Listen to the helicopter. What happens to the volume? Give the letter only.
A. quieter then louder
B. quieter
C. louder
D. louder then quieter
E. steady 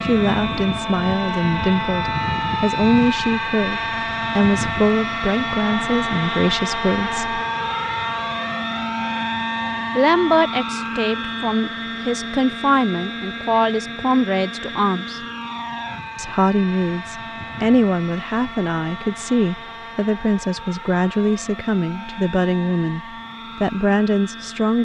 B.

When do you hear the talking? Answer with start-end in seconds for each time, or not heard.
0.0-7.4, 9.9-15.2, 16.1-23.0, 23.6-24.7.